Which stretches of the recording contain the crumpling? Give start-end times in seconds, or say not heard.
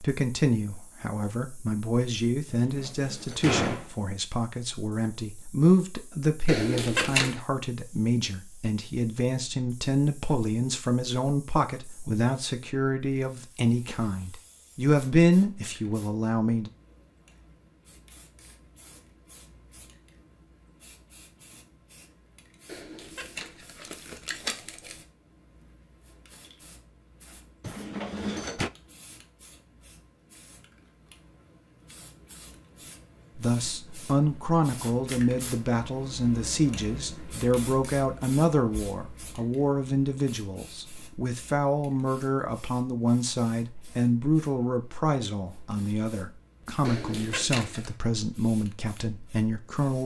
6.5-7.4, 22.6-25.1, 46.9-48.0.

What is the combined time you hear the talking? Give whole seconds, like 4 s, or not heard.
33 s.